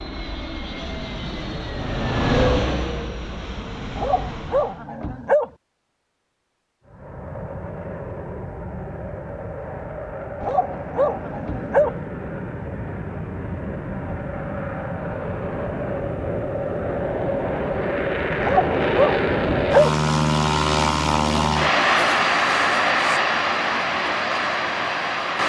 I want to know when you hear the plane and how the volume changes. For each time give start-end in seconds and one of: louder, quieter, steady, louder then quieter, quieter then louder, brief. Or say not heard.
0.0-4.9 louder then quieter
6.8-25.4 louder.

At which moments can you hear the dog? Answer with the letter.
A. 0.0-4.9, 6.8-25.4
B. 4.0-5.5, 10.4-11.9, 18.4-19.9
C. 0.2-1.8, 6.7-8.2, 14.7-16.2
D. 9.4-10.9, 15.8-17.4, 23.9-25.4
B.